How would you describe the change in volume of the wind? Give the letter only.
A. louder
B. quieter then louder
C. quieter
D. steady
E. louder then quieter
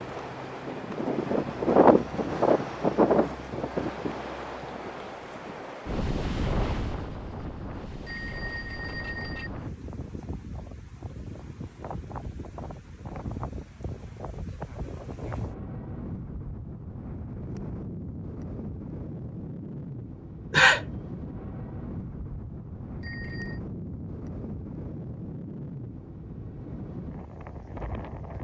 C.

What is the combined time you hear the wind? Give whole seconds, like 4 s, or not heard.
28 s.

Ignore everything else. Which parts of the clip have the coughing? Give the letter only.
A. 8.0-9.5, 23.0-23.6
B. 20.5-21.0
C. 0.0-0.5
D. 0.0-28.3
B.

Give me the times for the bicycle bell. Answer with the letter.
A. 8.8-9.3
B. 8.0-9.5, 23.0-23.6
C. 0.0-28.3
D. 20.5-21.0
B.